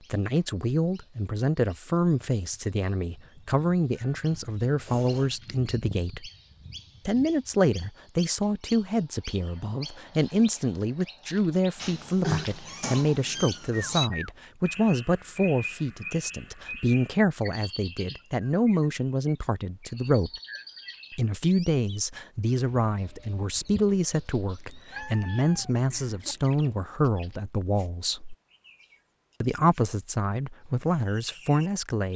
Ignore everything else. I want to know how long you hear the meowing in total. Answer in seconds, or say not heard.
5 s.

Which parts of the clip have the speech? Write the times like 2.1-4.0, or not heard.
0.1-6.3, 7.0-20.3, 21.1-28.4, 29.4-32.1.